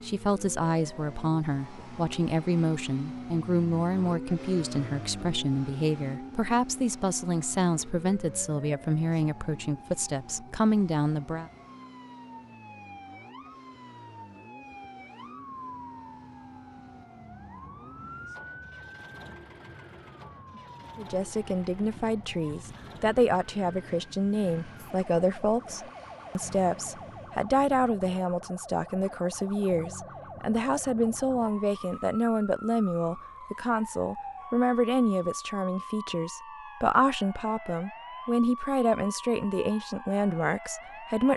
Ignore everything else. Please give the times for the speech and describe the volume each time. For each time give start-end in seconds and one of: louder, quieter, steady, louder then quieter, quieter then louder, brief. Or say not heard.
0.0-11.5 steady
20.9-41.3 steady.